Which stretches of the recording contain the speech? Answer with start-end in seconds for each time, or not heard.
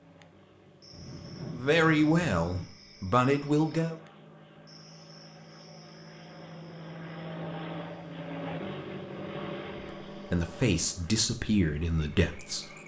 1.5-4.0, 9.7-12.7.